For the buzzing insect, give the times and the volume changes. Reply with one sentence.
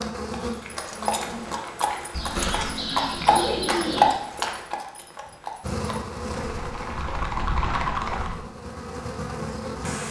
The buzzing insect can be heard briefly from 0.0 to 1.6 s; and from 5.6 to 10.0 s, getting quieter then louder.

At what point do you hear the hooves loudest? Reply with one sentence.
The loudest moment of the hooves is at 4 seconds.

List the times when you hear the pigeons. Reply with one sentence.
The pigeons can be heard from 2.1 to 4.2 s.